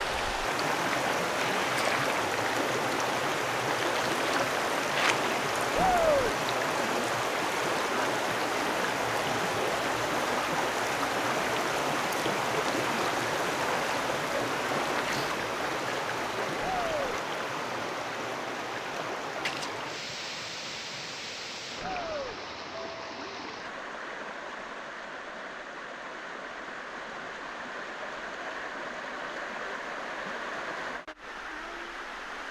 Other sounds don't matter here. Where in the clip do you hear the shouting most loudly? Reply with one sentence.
The volume of the shouting peaks at 6 seconds.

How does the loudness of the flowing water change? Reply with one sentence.
The loudness of the flowing water goes down.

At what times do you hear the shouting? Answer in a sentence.
The shouting can be heard from 5.8 to 6.3 s, from 16.6 to 17.1 s and from 21.8 to 22.4 s.